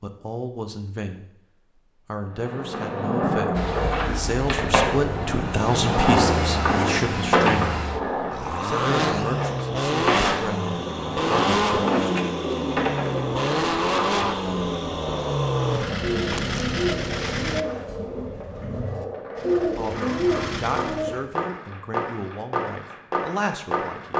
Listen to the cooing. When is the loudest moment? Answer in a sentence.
The loudest moment of the cooing is at 20 seconds.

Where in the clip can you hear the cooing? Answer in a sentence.
The cooing can be heard from 10.8 to 21.4 s.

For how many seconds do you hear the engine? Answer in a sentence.
The engine can be heard for 16 seconds in total.